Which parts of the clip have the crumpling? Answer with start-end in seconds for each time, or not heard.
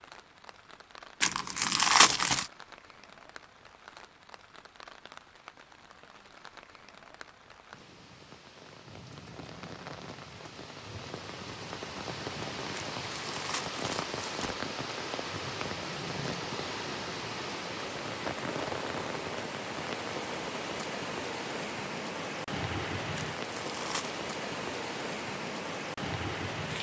1.2-2.5, 12.8-14.6, 23.1-24.2.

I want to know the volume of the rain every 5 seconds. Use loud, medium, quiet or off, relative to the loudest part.
quiet, quiet, loud, loud, loud, loud.